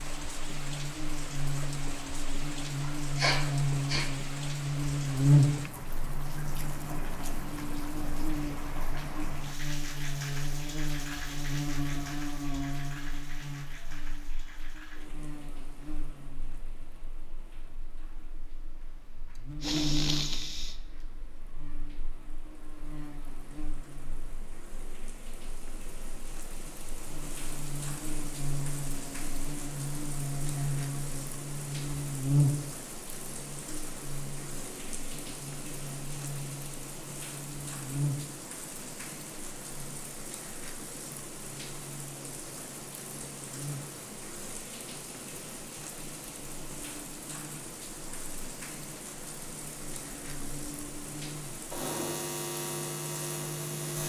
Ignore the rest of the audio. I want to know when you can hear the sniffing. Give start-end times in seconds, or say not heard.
2.9-4.2, 19.6-20.8, 51.5-52.3.